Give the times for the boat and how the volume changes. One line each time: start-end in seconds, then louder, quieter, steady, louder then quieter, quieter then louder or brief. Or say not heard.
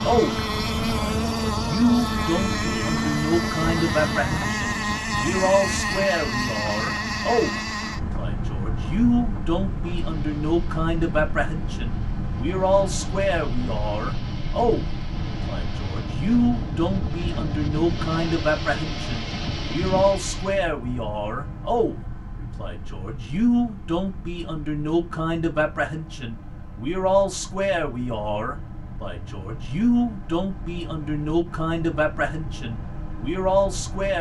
0.0-34.1 quieter.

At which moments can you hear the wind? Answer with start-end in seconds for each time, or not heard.
0.0-20.6.